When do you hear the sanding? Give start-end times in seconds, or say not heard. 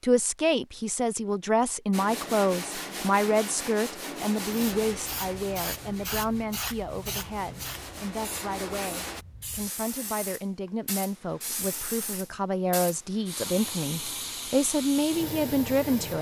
1.9-9.2.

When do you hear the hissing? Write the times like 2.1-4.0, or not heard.
4.3-16.1.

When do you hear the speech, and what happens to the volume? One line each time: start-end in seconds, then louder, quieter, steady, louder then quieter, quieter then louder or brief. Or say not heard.
0.0-16.1 quieter then louder.